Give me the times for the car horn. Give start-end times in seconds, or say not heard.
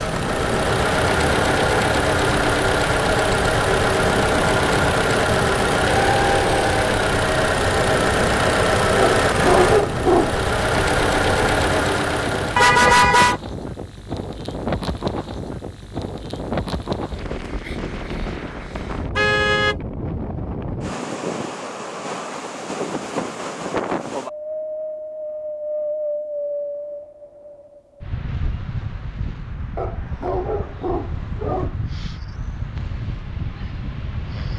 12.6-13.4, 19.1-19.8.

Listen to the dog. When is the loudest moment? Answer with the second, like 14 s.
10 s.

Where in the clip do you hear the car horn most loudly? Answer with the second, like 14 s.
13 s.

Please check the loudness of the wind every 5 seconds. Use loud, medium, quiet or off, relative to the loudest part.
loud, loud, loud, loud, loud, loud, medium.